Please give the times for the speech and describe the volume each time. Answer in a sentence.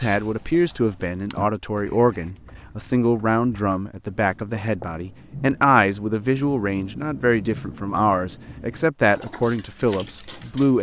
You can hear the speech from 0.0 to 10.7 s, at a steady volume.